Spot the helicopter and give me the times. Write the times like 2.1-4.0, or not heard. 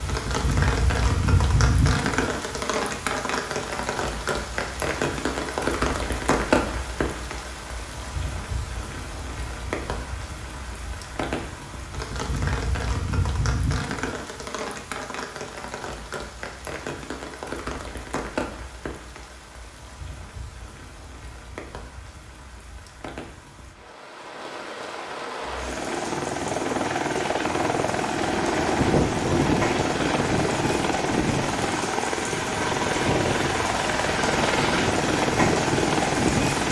25.4-36.6.